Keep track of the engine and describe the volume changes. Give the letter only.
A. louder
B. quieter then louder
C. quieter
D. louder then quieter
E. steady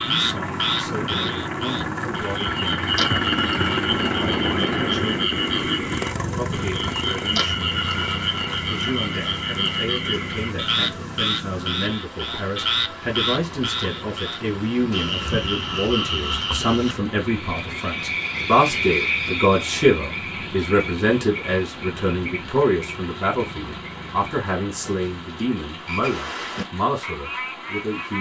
C.